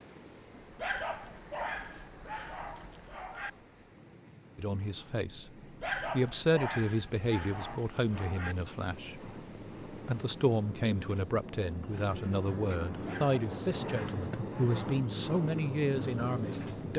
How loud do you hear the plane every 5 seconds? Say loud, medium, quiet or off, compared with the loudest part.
quiet, quiet, loud, loud.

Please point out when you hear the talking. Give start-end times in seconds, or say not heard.
4.5-16.9.